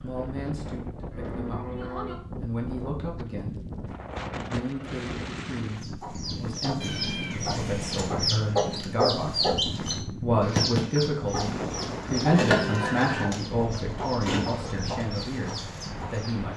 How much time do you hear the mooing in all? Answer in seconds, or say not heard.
3 s.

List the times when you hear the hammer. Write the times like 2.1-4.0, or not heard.
not heard.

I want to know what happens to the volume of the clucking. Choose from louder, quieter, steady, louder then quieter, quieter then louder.
louder then quieter.